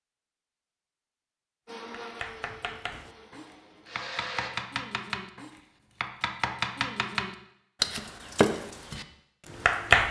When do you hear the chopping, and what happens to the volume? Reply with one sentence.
You can hear the chopping from 2.0 to 10.0 s, getting louder.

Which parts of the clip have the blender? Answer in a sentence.
You can hear the blender from 1.6 to 4.5 s.